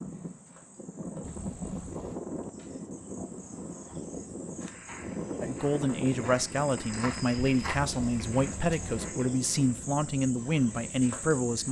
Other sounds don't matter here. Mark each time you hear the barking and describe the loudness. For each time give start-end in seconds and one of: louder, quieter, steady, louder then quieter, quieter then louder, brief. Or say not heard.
not heard.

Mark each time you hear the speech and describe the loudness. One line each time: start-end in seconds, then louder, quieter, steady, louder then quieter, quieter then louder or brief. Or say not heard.
5.4-11.6 steady.